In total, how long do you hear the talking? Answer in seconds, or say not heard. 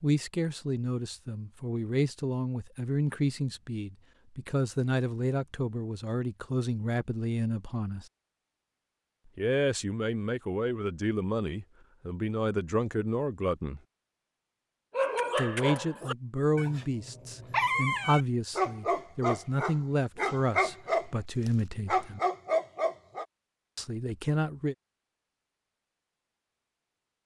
20 s.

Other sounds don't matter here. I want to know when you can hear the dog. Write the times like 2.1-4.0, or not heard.
14.9-23.2.